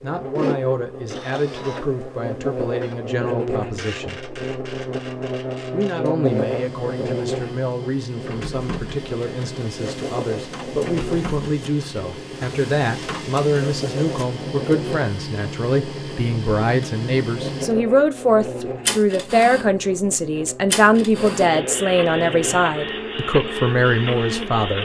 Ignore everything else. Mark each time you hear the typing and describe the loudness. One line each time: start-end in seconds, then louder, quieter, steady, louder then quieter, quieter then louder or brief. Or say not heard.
not heard.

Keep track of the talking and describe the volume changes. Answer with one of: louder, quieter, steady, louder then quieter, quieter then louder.
louder.